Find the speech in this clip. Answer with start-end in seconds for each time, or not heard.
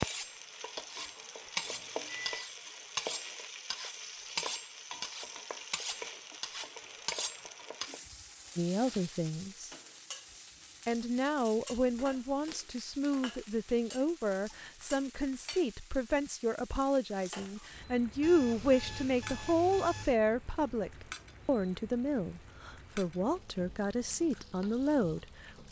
8.6-9.7, 10.8-25.5.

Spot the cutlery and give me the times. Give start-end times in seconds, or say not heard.
0.0-8.0.